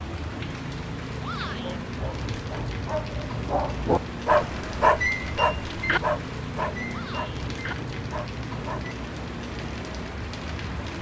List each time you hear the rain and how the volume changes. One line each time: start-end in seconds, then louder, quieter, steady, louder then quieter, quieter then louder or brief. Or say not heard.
0.0-10.9 steady.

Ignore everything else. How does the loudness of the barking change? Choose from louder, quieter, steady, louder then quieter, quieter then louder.
louder then quieter.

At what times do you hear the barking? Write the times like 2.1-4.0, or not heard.
1.6-8.9.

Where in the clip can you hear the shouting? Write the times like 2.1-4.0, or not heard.
1.2-1.8, 6.8-7.3.